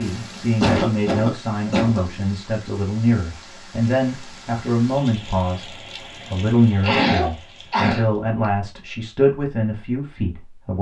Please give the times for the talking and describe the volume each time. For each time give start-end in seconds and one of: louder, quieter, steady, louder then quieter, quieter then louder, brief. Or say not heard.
0.0-10.7 steady.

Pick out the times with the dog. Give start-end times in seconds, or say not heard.
not heard.